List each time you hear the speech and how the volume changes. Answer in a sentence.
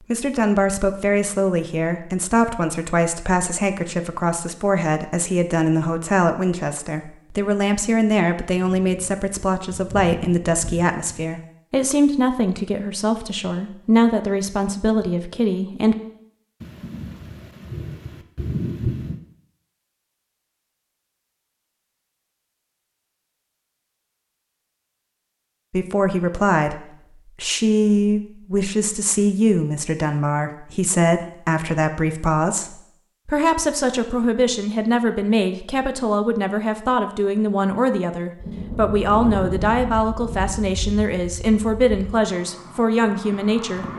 You can hear the speech from 0.1 to 15.9 s, at a steady volume; and from 25.7 to 43.9 s, at a steady volume.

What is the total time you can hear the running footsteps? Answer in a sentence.
The running footsteps can't be heard in this clip.